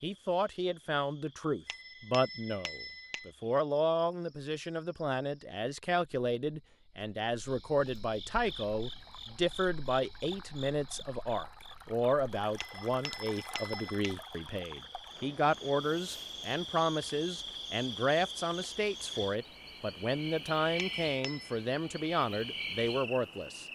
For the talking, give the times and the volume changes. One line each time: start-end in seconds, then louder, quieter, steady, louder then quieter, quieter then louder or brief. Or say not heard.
0.0-23.6 steady.